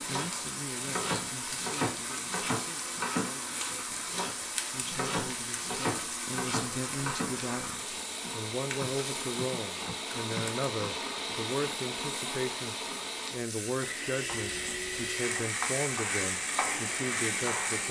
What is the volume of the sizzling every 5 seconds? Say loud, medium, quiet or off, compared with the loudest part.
medium, medium, medium, loud.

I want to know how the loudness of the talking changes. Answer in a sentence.
The volume of the talking goes up.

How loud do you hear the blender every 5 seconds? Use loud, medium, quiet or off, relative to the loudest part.
medium, loud, loud, loud.